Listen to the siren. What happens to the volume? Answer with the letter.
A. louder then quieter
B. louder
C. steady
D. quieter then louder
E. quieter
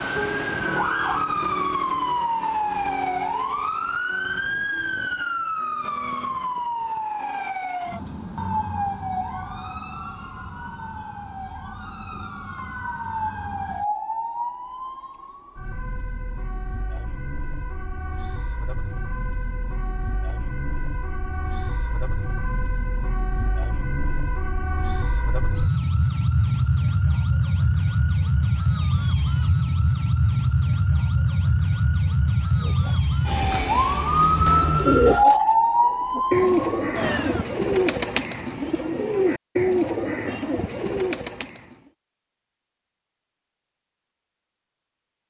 D.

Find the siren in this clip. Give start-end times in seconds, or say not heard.
0.0-37.5.